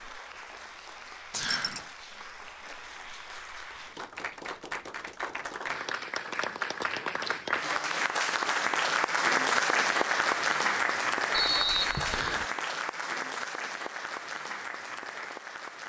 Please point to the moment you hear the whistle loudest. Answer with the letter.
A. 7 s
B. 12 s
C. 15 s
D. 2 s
B.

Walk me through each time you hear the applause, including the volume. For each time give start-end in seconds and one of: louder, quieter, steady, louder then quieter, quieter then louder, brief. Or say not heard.
0.0-15.8 louder then quieter.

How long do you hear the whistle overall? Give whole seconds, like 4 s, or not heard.
2 s.